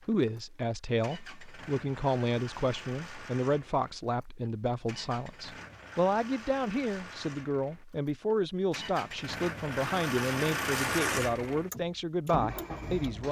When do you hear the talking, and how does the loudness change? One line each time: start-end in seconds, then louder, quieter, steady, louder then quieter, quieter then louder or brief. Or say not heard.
0.1-13.2 steady.